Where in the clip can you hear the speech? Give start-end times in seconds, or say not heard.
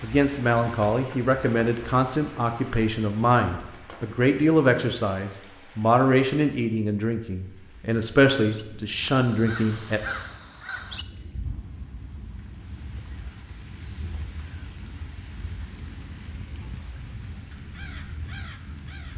0.0-10.0.